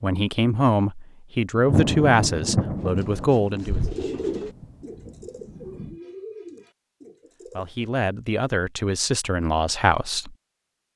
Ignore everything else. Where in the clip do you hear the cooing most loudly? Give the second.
4 s.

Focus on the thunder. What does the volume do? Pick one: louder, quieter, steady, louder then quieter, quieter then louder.
quieter.